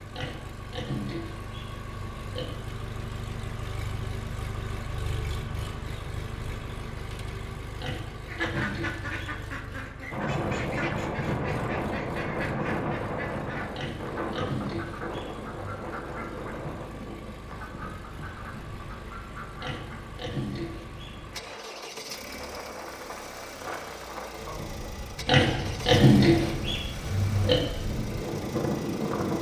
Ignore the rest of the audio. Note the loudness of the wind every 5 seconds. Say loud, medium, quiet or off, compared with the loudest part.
off, off, loud, medium, medium, loud.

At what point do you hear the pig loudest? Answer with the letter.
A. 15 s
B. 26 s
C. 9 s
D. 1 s
B.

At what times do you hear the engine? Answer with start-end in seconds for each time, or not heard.
0.0-29.3.